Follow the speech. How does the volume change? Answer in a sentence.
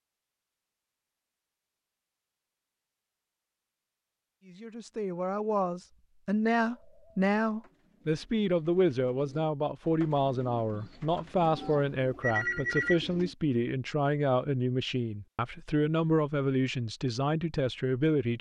The volume of the speech stays about the same.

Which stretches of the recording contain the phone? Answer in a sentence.
The phone can be heard from 11.4 to 13.0 s.